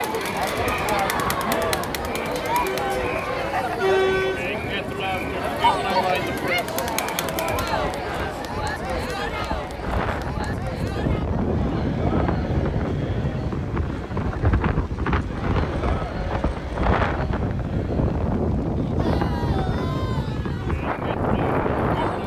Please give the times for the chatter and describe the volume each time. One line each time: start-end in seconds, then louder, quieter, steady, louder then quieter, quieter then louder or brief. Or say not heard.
0.0-22.2 quieter.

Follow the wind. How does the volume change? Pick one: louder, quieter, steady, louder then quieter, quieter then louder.
louder.